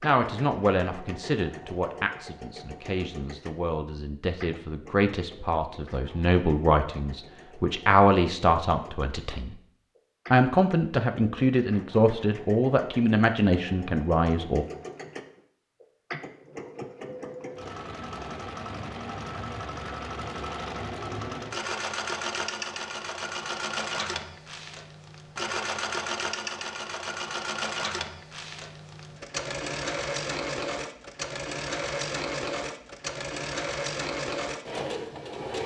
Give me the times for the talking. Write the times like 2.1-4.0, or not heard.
0.0-9.6, 10.3-14.7.